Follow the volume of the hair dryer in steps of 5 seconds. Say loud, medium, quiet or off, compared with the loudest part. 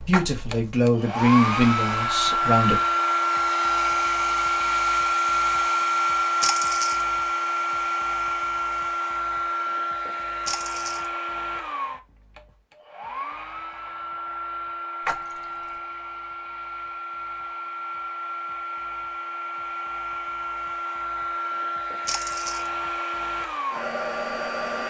loud, loud, medium, medium, medium.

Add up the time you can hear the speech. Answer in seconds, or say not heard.
3 s.